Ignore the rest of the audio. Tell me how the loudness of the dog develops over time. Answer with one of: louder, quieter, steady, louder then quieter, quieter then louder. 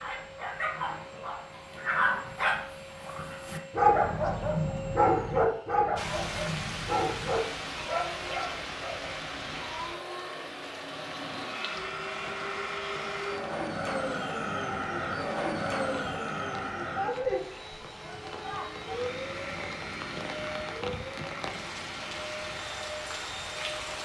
louder then quieter.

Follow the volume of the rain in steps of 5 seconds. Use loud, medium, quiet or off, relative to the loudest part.
off, loud, medium, medium, loud.